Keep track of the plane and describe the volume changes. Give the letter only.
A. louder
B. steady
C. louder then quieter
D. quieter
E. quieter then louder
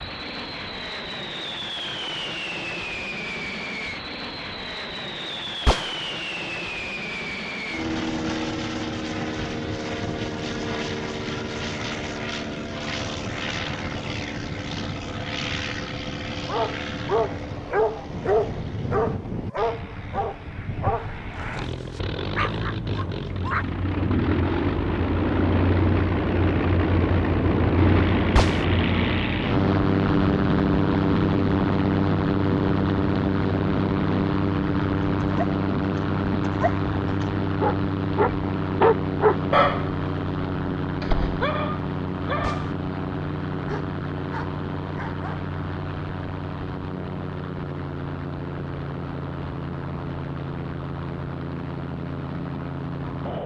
C.